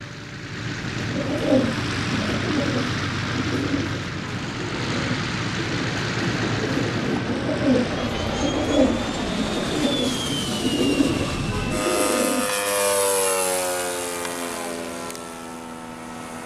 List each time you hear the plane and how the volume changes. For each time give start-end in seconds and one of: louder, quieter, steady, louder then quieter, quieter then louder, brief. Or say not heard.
0.0-16.4 steady.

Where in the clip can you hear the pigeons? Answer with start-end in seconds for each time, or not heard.
0.9-12.6.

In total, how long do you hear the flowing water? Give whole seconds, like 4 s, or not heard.
not heard.